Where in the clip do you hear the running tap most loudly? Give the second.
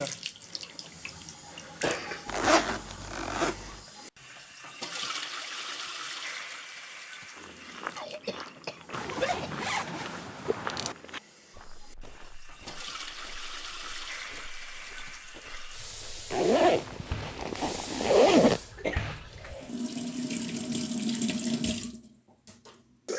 21 s.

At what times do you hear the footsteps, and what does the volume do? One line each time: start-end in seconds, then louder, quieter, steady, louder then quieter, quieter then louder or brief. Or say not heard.
7.3-16.3 quieter.